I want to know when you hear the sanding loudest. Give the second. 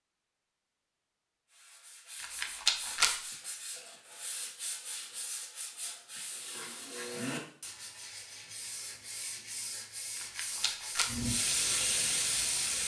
7 s.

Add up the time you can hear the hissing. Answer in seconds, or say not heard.
2 s.